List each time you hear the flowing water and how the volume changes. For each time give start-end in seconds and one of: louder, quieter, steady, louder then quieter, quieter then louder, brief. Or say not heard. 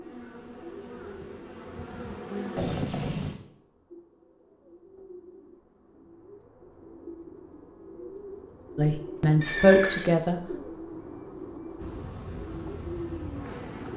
not heard.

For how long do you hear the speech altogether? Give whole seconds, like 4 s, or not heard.
2 s.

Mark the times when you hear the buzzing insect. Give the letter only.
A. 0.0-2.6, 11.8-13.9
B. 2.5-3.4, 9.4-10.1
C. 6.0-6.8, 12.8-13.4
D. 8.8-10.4
A.